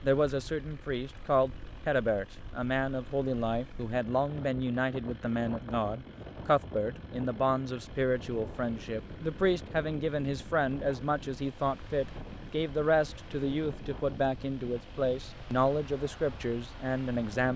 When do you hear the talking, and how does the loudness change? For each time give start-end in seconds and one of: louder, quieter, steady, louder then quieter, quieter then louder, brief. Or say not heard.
0.0-17.5 steady.